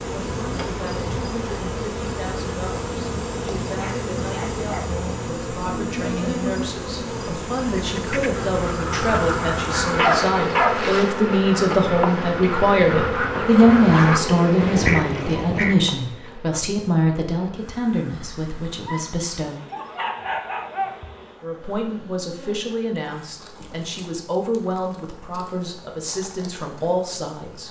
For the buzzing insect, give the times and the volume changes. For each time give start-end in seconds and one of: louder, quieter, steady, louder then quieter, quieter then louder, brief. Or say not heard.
0.0-27.6 quieter.